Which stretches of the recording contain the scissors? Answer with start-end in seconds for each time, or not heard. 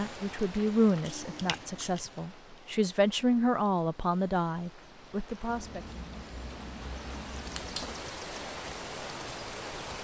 1.0-2.1, 5.5-8.0.